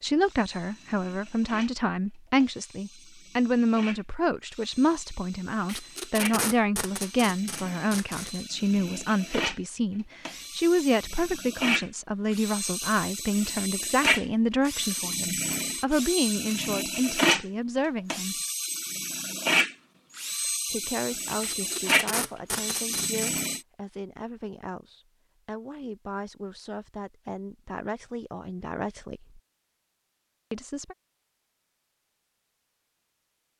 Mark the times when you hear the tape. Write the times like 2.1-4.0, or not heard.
5.7-8.4, 21.4-23.3.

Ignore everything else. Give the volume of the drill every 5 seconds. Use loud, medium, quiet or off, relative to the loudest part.
quiet, medium, loud, loud, loud, off, off.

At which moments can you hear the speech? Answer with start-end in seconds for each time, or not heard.
0.0-18.4, 20.7-29.4, 30.5-30.9.